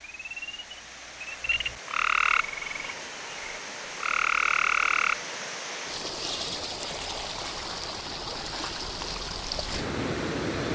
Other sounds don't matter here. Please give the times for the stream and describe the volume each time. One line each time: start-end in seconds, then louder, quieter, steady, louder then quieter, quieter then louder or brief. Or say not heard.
0.0-10.6 louder.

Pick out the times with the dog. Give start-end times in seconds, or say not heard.
not heard.